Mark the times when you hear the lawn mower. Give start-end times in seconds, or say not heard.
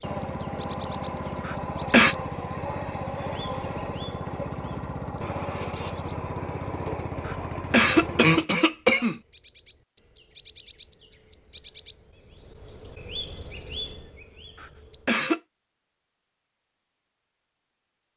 0.0-8.4.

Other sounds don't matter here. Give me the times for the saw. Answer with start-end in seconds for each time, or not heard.
not heard.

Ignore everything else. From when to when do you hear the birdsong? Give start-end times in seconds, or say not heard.
0.0-15.1.